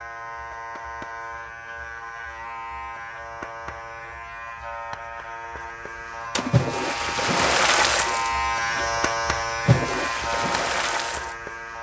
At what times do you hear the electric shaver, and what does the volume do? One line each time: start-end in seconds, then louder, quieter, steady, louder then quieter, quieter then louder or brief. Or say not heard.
0.0-11.7 louder.